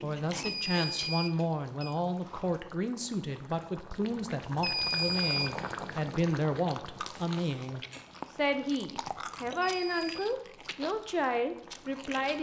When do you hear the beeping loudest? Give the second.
5 s.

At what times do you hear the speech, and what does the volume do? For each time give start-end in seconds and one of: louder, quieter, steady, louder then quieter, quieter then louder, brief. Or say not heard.
0.0-12.3 steady.